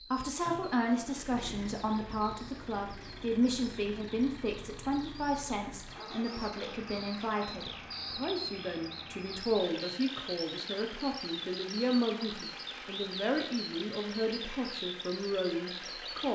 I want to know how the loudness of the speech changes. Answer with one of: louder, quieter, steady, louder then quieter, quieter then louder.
steady.